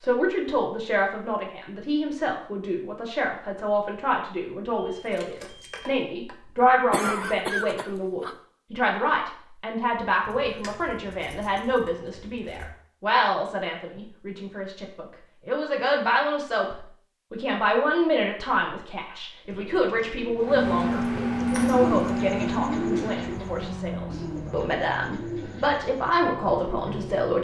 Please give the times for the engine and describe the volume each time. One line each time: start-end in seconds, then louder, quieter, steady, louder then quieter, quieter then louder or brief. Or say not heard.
20.4-27.3 quieter.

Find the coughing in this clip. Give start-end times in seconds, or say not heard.
6.9-8.3.